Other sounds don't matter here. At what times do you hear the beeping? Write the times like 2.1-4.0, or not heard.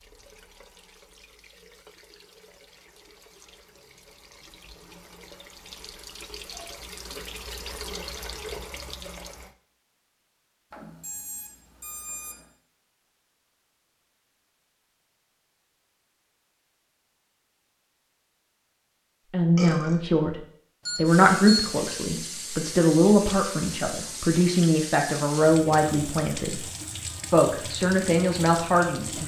10.7-12.4, 20.9-21.8.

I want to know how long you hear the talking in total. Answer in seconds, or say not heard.
9 s.